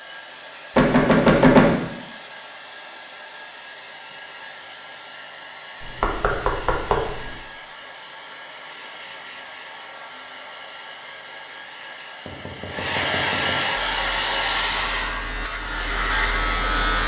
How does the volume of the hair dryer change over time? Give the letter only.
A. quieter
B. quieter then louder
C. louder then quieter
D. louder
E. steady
D.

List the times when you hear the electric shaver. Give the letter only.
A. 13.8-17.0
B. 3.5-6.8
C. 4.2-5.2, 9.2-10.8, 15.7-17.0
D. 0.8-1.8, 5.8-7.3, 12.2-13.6
A.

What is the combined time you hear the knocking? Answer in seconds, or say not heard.
4 s.